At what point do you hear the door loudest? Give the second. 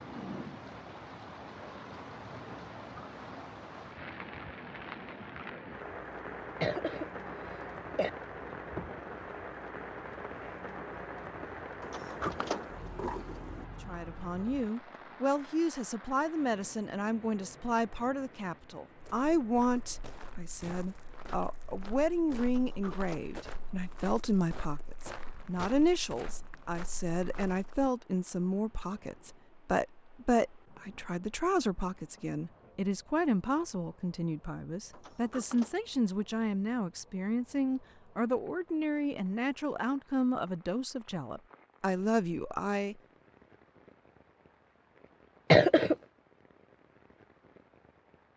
12 s.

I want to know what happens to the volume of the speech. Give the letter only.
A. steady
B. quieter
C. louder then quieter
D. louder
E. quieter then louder
A.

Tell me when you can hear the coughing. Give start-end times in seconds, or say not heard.
6.6-8.1, 45.5-46.0.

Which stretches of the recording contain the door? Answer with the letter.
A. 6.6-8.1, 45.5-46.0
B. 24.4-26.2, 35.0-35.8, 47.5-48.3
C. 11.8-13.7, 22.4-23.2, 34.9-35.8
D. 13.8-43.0
C.